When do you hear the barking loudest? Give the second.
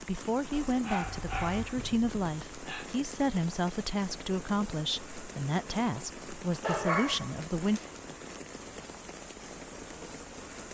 7 s.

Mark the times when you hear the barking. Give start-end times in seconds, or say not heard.
0.7-2.9, 6.6-7.9.